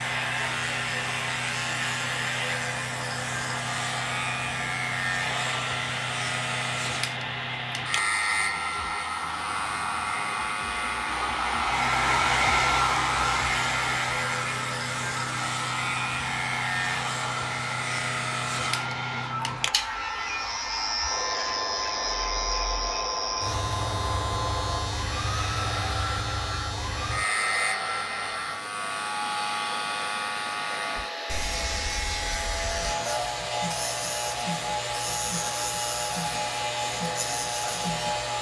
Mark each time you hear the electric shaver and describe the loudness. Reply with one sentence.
You can hear the electric shaver from 0.0 to 38.3 s, at a steady volume.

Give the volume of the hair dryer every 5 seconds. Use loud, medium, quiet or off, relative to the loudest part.
medium, medium, loud, medium, medium, medium, medium, medium.